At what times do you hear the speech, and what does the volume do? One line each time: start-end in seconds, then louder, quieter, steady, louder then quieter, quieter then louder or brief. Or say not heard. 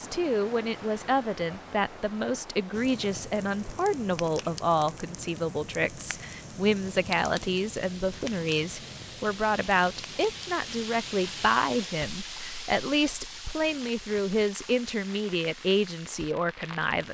0.0-17.0 steady.